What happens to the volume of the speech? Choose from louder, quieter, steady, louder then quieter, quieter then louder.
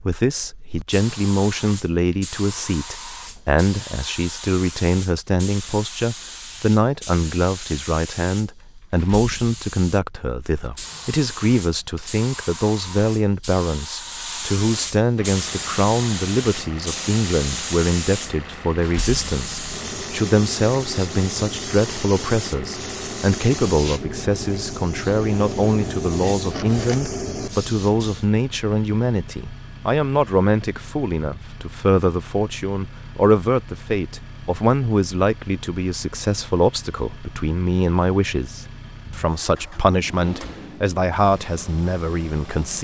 steady.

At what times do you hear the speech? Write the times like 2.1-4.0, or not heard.
0.1-42.7.